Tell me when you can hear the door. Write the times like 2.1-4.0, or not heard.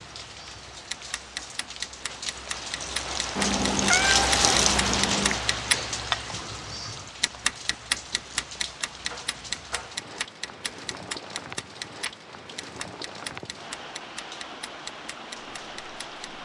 not heard.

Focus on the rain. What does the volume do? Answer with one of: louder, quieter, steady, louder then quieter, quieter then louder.
louder then quieter.